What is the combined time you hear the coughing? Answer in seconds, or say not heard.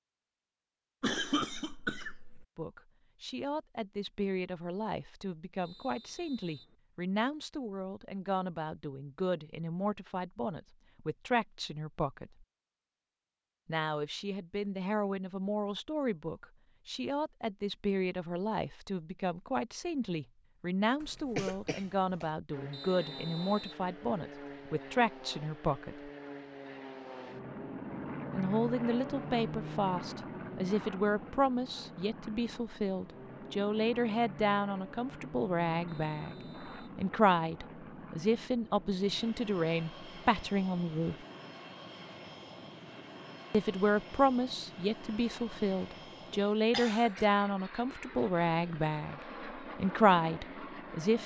4 s.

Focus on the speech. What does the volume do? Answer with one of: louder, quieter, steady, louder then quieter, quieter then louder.
louder.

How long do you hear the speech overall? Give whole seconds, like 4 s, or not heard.
43 s.